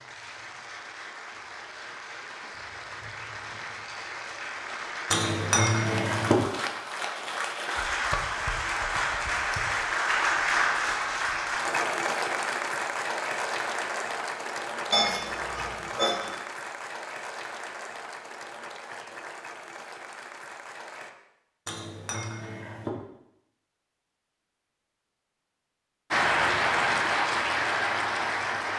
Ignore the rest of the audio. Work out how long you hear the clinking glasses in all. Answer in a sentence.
You can hear the clinking glasses for 4 seconds altogether.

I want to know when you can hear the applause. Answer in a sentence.
You can hear the applause from 0.0 to 21.1 s and from 26.1 to 28.7 s.